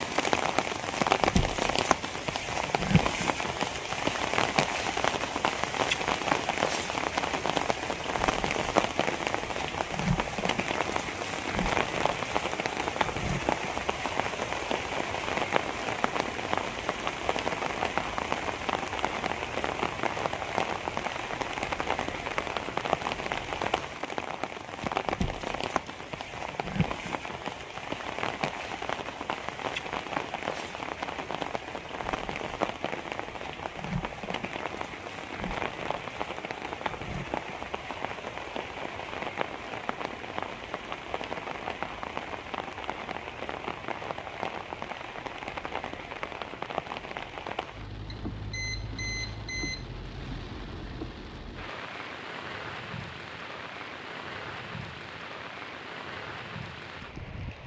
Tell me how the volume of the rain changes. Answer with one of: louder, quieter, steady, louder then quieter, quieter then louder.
quieter.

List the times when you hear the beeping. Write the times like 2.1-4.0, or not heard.
24.8-25.9, 48.0-49.9.